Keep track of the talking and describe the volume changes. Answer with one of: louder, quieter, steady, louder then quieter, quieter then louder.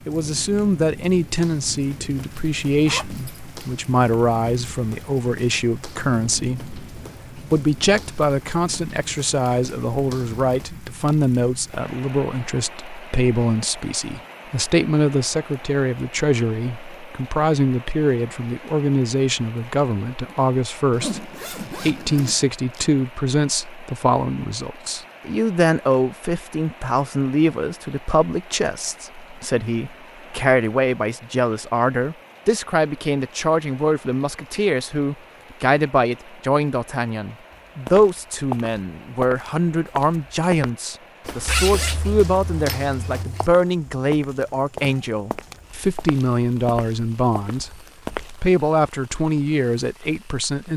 steady.